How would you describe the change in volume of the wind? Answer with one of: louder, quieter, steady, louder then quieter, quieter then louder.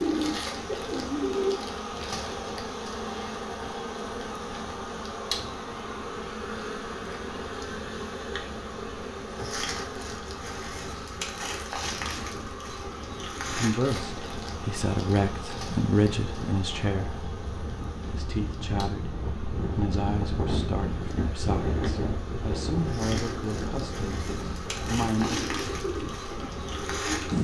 louder.